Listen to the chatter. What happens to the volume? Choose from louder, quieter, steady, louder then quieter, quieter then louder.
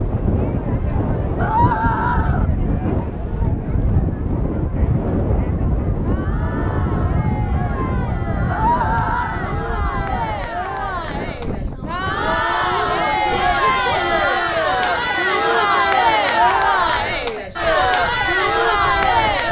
louder.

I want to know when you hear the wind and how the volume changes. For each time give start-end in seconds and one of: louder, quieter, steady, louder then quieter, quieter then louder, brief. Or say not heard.
0.0-19.4 quieter.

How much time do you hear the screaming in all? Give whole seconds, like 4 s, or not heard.
3 s.